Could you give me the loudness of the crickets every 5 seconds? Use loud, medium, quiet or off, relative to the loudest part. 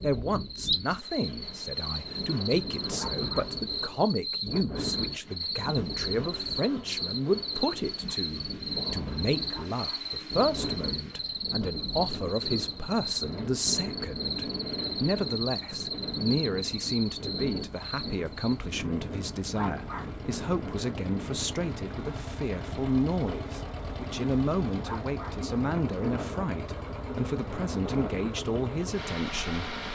loud, loud, loud, loud, off, off.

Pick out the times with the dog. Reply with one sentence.
The dog can be heard from 3.0 to 3.5 s, from 9.5 to 10.1 s, from 19.6 to 20.1 s and from 24.8 to 25.4 s.